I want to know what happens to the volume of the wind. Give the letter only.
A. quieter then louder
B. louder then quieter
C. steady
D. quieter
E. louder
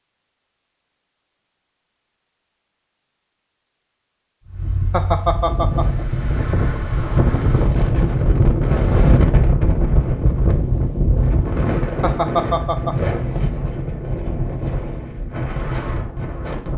B.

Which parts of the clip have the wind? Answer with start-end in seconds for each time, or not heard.
4.5-16.7.